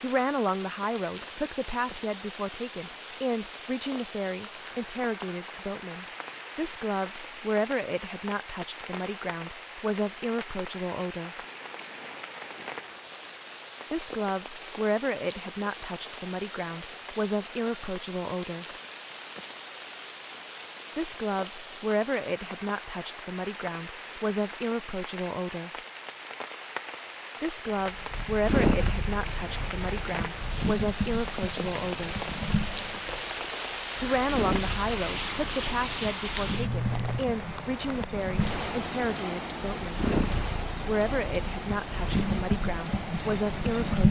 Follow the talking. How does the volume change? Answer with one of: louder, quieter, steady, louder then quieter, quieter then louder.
steady.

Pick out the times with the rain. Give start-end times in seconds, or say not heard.
0.0-44.0.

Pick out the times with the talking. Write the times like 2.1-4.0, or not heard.
0.0-11.3, 13.9-18.6, 20.9-25.7, 27.4-32.1, 34.0-40.0, 40.8-44.0.